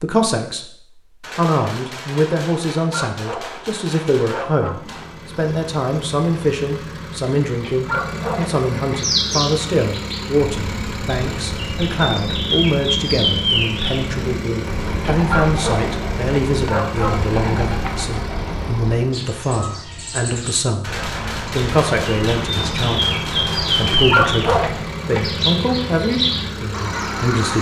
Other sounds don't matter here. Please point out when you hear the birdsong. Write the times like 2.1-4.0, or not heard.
8.9-27.5.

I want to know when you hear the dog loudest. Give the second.
24 s.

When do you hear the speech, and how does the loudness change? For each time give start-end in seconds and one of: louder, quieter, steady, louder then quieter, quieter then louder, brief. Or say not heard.
0.0-0.7 brief
1.4-27.5 steady.